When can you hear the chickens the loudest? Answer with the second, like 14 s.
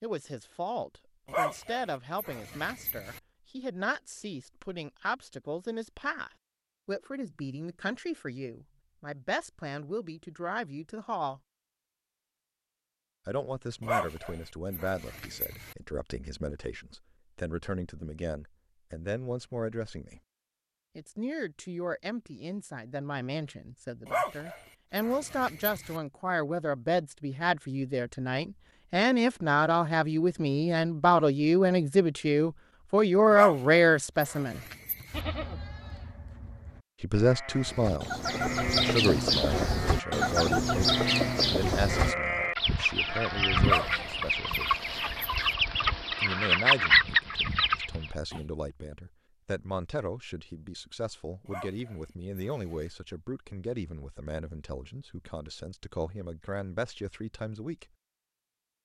47 s.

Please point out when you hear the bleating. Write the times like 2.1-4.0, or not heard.
35.1-44.6.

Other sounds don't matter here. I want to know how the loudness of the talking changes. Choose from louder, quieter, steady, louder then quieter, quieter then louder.
louder then quieter.